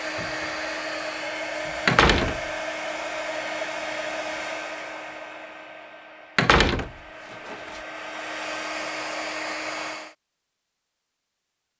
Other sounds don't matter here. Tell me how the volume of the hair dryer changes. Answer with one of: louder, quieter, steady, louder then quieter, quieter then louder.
quieter then louder.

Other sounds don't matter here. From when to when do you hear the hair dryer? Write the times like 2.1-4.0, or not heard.
0.0-10.2.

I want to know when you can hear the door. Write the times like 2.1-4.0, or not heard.
1.9-2.4, 6.3-7.8.